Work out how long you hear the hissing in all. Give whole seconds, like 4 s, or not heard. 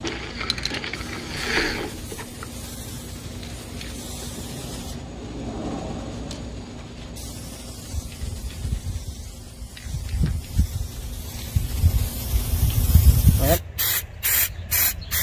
15 s.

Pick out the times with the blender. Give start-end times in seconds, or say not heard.
0.0-2.5.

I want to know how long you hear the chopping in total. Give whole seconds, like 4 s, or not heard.
not heard.